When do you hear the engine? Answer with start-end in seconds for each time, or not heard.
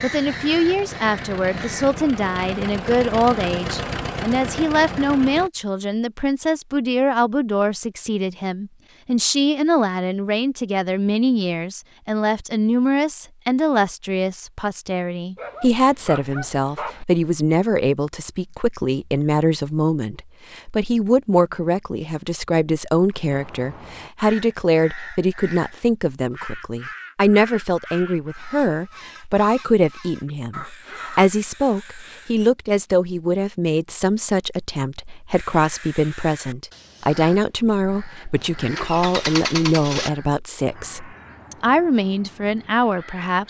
0.0-5.5, 38.4-40.1.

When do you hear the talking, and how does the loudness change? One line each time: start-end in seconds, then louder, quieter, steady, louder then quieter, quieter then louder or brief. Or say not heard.
0.0-43.4 steady.